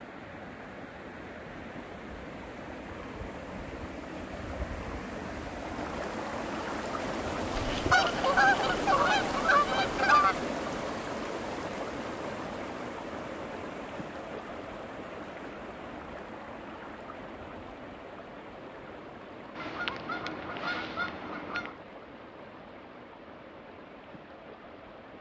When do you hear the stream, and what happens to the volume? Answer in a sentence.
You can hear the stream from 0.0 to 25.1 s, getting louder then quieter.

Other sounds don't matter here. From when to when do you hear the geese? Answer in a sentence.
The geese can be heard from 7.5 to 10.4 s and from 19.6 to 21.7 s.